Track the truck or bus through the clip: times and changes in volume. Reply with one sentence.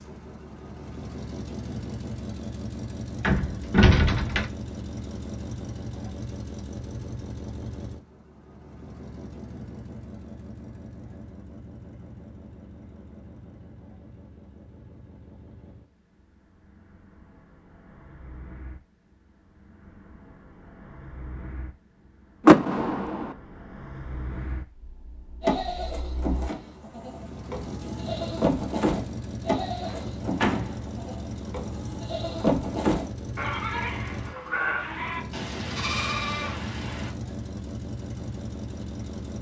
The truck or bus can be heard from 0.0 to 39.3 s, getting quieter then louder.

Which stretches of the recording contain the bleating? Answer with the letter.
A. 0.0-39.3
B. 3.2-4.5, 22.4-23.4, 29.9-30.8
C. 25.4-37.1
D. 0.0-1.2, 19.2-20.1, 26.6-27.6
C.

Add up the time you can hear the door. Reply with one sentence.
The door can be heard for 3 seconds in total.